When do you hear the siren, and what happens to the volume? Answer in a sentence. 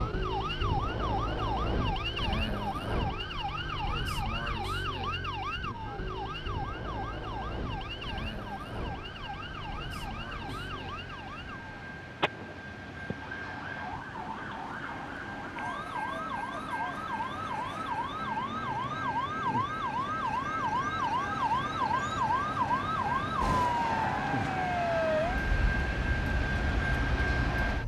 The siren can be heard from 0.0 to 27.8 s, getting quieter then louder.